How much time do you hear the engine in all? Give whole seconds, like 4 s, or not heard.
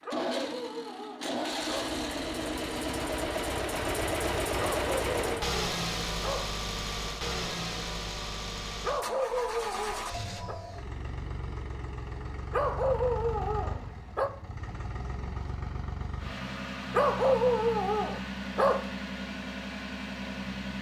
21 s.